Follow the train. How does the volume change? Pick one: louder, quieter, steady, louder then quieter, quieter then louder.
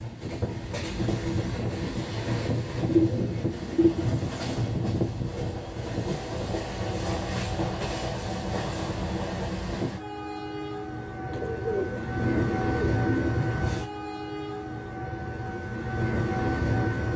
steady.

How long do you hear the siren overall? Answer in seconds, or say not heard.
not heard.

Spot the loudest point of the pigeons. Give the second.
3 s.